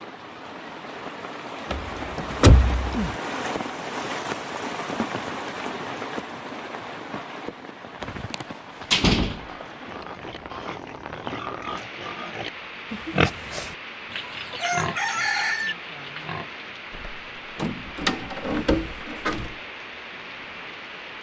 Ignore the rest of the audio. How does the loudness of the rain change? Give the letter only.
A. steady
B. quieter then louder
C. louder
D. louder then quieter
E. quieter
E.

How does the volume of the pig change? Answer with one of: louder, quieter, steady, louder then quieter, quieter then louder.
louder then quieter.